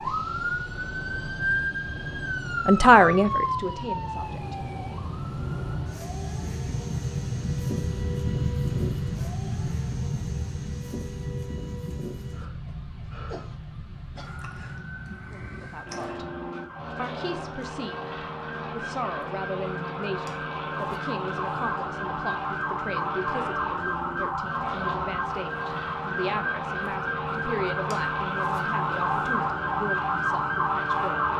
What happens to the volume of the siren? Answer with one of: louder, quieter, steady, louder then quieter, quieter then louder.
quieter then louder.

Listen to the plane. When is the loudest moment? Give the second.
9 s.